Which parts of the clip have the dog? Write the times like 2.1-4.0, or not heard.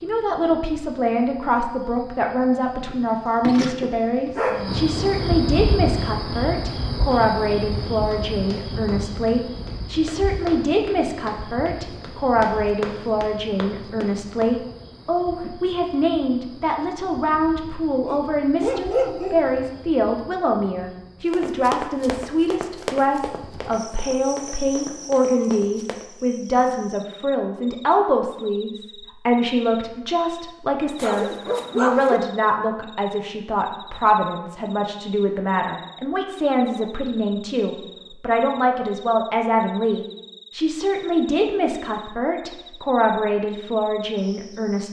2.8-4.8, 18.1-19.5, 30.9-32.2.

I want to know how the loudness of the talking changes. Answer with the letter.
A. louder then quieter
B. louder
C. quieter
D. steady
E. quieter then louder
D.